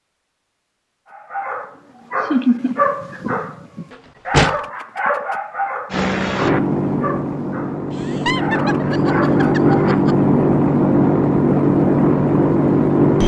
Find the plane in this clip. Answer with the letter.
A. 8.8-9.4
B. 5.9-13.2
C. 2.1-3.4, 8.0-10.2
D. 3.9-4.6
B.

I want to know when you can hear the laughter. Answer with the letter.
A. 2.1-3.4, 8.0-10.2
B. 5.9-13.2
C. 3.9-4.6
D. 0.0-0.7
A.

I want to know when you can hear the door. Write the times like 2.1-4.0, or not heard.
3.9-4.6.